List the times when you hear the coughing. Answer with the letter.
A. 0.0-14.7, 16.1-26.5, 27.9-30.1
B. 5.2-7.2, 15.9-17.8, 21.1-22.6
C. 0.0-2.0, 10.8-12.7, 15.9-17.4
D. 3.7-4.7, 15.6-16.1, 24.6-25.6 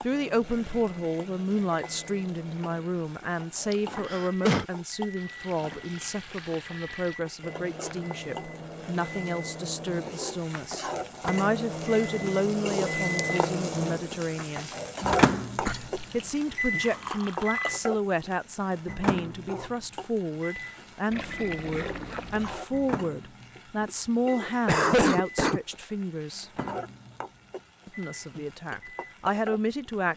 D.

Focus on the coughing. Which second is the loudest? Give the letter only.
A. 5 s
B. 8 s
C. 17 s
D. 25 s
D.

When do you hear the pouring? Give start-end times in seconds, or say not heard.
5.2-7.2, 15.9-17.8, 21.1-22.6.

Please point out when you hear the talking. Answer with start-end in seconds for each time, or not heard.
0.0-14.7, 16.1-26.5, 27.9-30.1.